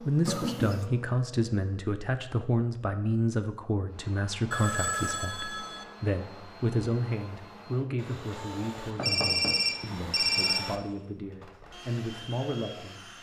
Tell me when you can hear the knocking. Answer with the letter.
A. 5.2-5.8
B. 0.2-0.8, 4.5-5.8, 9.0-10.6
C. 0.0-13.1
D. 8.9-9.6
D.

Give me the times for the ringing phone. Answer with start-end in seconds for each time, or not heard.
0.2-0.8, 4.5-5.8, 9.0-10.6.